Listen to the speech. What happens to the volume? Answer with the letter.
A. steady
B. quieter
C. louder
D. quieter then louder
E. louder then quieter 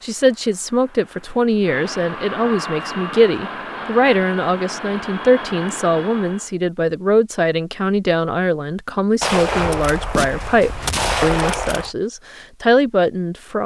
A.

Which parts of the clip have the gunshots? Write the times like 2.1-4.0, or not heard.
9.2-11.9.